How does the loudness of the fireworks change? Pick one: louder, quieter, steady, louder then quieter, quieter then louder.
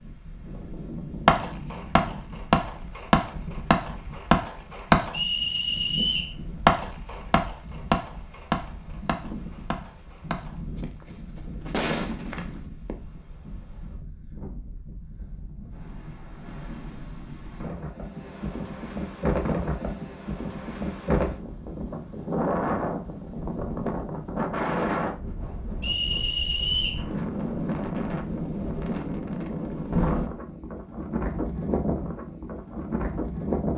quieter.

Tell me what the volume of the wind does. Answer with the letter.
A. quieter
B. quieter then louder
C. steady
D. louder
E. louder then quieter
D.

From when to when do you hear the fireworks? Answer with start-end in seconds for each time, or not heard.
1.2-12.9.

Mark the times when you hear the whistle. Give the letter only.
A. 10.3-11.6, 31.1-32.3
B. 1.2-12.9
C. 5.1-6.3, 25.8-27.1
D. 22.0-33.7
C.